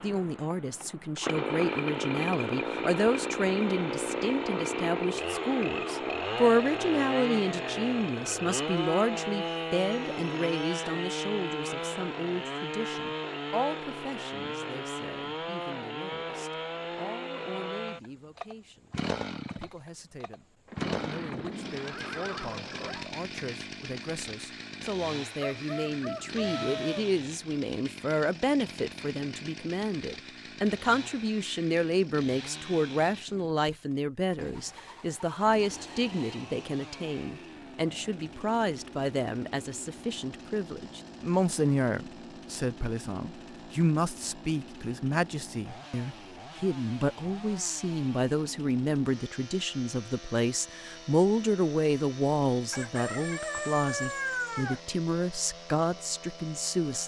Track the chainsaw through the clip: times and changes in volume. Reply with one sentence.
You can hear the chainsaw from 0.0 to 57.0 s, getting quieter.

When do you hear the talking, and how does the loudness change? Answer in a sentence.
You can hear the talking from 0.0 to 57.0 s, getting quieter then louder.